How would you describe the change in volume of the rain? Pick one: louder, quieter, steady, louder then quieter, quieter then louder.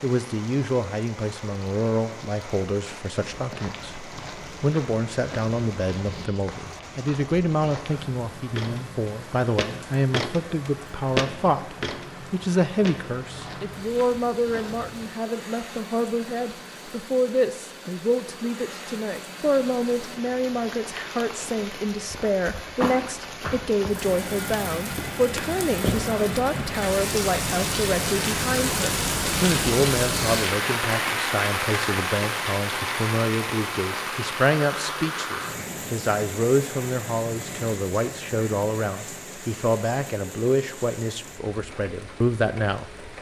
louder then quieter.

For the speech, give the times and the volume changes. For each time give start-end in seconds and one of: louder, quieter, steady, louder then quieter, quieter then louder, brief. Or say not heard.
0.0-42.9 steady.